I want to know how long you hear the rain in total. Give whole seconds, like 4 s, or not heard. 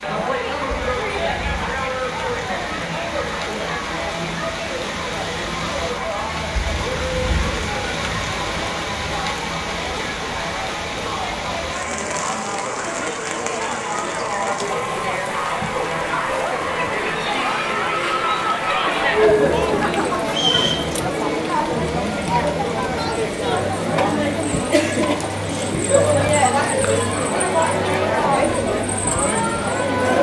30 s.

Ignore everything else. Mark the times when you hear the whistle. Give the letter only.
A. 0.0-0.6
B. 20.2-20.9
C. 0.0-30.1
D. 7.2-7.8
B.